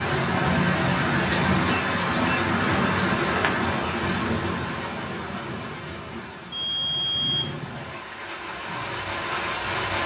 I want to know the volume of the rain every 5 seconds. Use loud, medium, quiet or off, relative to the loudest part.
loud, medium.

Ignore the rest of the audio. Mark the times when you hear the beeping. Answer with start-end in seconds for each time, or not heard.
1.7-2.4, 6.5-7.5.